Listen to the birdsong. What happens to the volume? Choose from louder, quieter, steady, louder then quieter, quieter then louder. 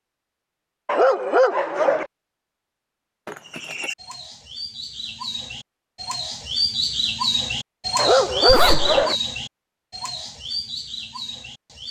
louder then quieter.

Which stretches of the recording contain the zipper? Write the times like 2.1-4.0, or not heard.
3.2-3.9, 8.4-9.0.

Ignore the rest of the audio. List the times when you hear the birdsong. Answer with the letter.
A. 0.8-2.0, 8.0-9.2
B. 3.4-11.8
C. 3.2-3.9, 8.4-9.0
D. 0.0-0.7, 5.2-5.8
B.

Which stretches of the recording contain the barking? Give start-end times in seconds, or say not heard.
0.8-2.0, 8.0-9.2.